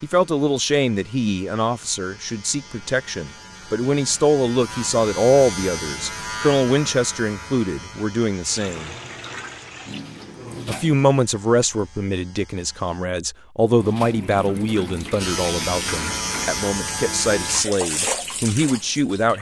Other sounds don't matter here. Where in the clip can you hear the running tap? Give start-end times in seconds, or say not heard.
8.4-11.0, 13.6-19.3.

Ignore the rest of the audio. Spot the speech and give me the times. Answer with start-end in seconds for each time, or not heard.
0.0-8.9, 10.7-19.3.